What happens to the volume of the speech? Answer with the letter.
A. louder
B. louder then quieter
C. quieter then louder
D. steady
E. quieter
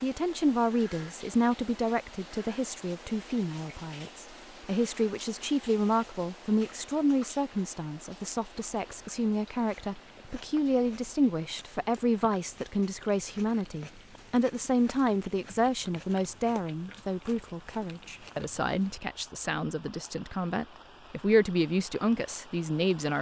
D.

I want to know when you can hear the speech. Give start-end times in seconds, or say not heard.
0.0-23.1.